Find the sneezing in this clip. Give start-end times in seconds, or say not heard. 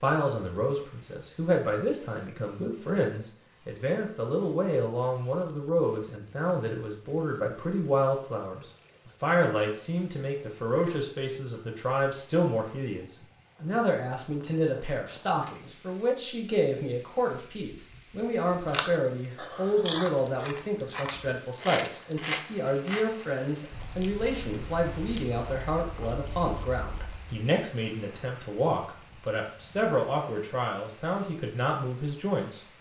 not heard.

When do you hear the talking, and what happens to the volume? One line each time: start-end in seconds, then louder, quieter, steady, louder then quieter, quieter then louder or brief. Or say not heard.
0.0-32.7 steady.